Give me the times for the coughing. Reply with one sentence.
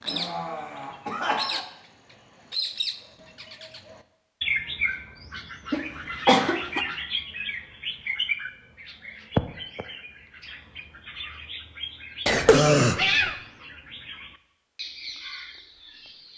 The coughing can be heard from 0.1 to 1.6 s, from 5.7 to 6.8 s and from 12.2 to 13.3 s.